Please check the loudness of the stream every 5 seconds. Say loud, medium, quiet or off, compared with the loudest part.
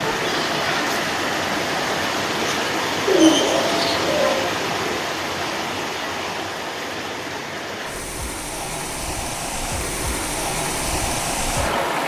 loud, medium, loud.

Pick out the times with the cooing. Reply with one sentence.
The cooing can be heard from 3.0 to 5.0 s.